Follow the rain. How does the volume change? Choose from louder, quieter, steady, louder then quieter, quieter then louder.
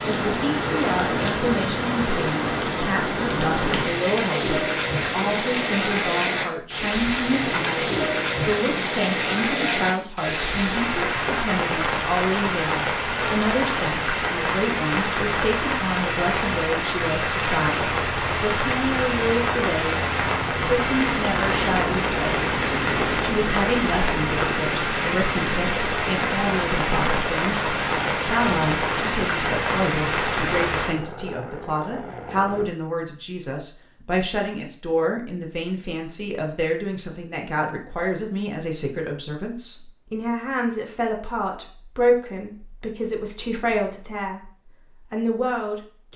steady.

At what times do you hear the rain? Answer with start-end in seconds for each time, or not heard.
0.0-30.9.